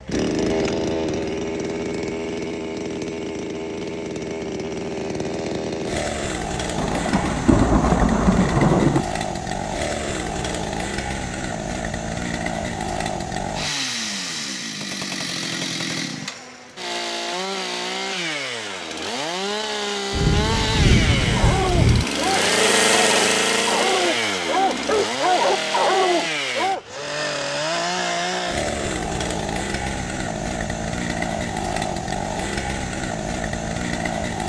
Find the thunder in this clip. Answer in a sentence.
You can hear the thunder from 6.8 to 9.1 s and from 20.1 to 22.1 s.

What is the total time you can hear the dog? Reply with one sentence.
The dog can be heard for 6 seconds in total.